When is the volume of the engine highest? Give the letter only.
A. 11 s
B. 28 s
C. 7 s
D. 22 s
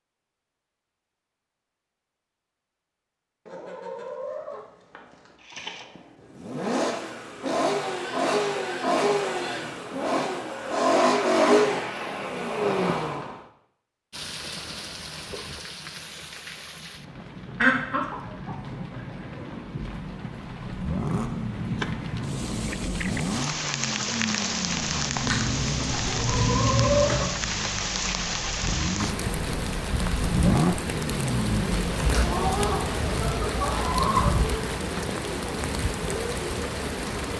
A.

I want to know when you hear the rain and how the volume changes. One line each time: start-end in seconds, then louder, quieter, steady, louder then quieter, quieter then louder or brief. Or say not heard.
14.1-37.3 louder.